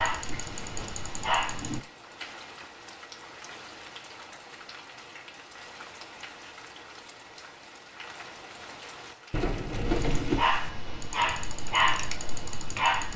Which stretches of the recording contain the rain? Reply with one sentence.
You can hear the rain from 0.1 to 10.8 s.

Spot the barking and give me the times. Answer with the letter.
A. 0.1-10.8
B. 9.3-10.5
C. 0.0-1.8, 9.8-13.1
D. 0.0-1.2
C.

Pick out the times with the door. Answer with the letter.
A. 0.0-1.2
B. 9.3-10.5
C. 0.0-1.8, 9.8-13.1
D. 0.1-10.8
B.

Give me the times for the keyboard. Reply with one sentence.
The keyboard can't be heard in this clip.